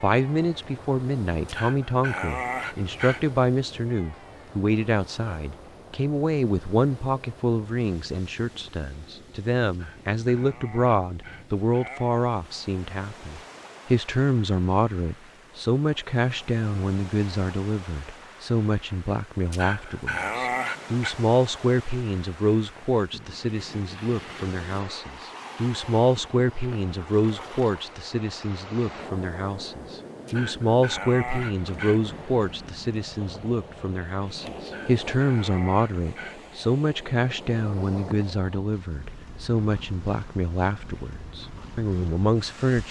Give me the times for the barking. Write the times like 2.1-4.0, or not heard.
1.4-3.4, 9.7-12.2, 19.5-21.1, 30.2-32.0, 34.6-36.5.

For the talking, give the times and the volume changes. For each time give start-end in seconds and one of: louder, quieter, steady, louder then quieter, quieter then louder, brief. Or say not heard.
0.0-42.8 steady.